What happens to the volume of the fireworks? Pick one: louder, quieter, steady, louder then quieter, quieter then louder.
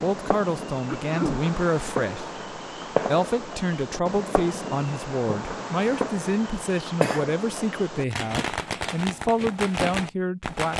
steady.